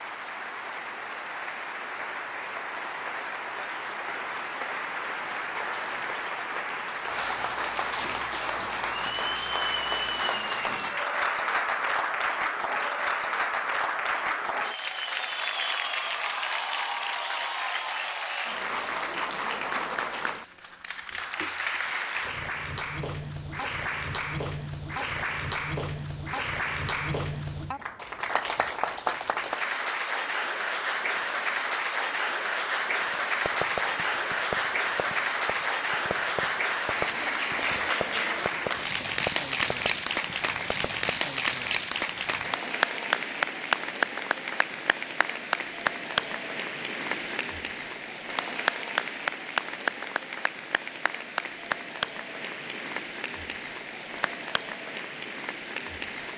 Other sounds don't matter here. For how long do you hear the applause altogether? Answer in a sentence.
The applause can be heard for 56 seconds in total.